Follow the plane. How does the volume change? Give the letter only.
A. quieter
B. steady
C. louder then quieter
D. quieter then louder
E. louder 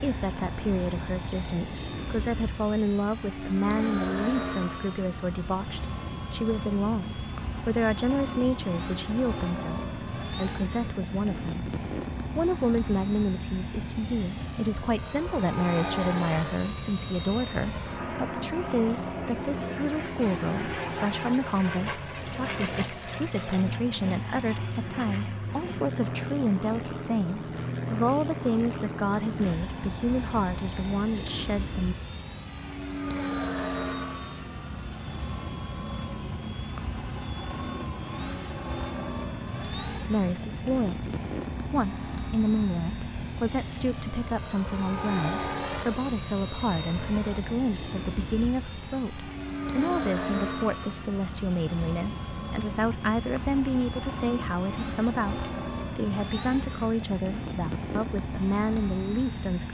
B.